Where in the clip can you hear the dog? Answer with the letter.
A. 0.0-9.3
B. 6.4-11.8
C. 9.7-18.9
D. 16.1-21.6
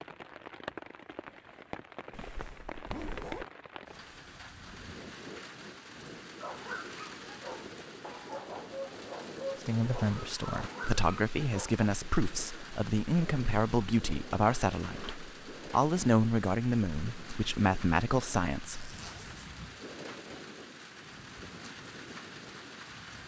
B.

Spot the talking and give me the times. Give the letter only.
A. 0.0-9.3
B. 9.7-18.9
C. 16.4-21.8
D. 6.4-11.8
B.